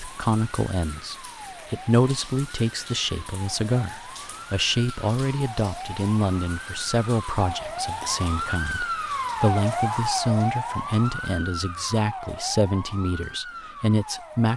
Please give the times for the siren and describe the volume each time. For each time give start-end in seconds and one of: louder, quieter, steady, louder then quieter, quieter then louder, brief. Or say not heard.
0.0-14.5 louder then quieter.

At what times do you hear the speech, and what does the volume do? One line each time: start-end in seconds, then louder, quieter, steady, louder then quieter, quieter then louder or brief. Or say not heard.
0.0-14.5 steady.